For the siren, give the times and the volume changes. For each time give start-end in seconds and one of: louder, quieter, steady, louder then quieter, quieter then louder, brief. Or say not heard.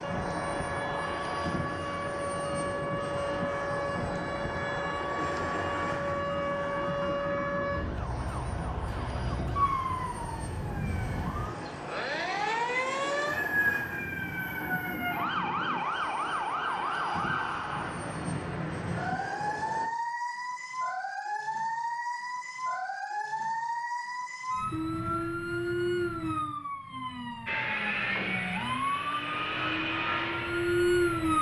0.0-31.3 steady.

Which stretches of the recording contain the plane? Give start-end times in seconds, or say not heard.
0.0-19.9, 27.4-31.3.